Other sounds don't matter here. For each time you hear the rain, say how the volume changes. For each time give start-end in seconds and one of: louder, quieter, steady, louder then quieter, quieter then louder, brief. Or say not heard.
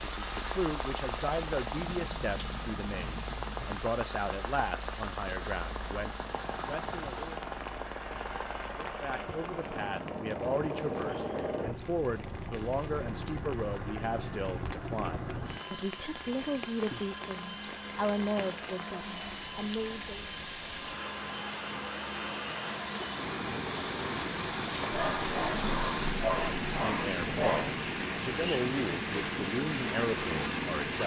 0.0-31.0 quieter then louder.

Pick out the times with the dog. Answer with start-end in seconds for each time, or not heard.
24.9-27.8.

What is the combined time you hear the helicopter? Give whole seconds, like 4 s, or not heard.
31 s.